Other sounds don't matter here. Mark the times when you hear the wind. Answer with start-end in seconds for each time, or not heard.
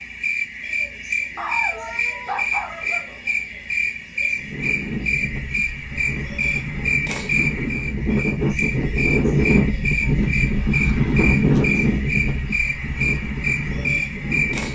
4.3-14.7.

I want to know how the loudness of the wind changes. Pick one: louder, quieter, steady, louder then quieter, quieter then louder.
louder then quieter.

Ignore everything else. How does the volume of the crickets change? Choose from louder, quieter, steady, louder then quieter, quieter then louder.
steady.